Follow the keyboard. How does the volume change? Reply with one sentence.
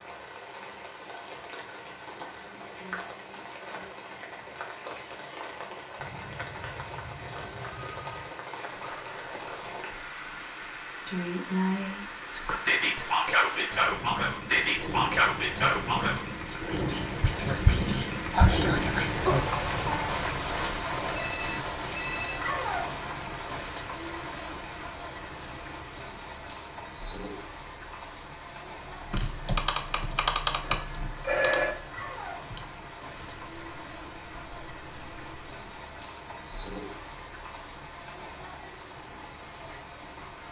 The loudness of the keyboard goes down.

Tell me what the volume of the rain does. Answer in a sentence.
The volume of the rain goes up, then down.